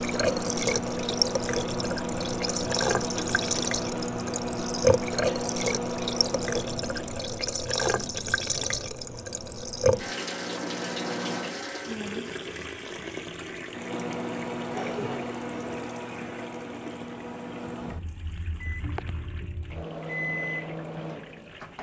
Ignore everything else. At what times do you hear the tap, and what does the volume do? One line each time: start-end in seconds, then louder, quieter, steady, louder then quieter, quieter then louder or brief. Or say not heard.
0.0-21.7 quieter.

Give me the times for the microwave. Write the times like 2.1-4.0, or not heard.
0.0-11.6, 13.7-21.7.